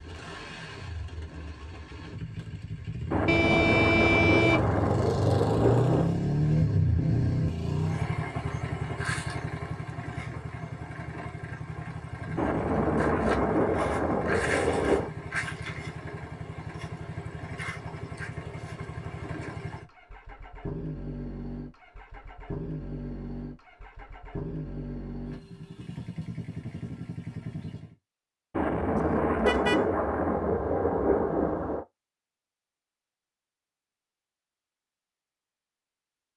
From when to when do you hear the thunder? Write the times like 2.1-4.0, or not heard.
3.1-6.2, 12.3-15.1, 28.5-31.9.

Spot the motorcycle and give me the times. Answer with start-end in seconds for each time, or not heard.
0.0-27.9.